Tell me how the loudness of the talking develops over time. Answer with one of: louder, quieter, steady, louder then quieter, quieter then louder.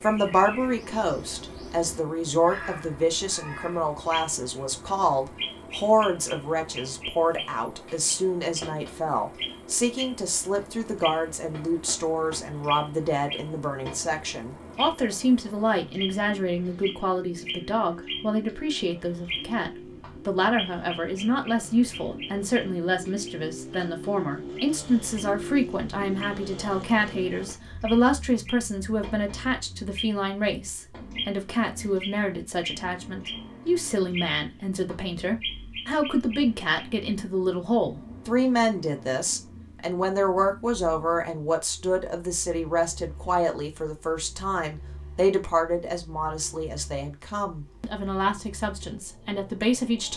steady.